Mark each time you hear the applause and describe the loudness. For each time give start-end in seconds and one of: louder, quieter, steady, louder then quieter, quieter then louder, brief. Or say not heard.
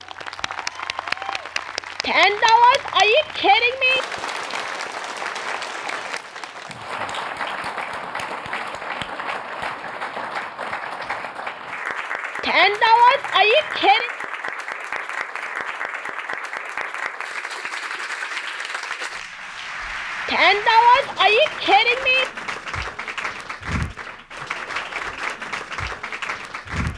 0.0-26.9 steady.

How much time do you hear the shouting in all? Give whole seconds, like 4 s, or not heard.
6 s.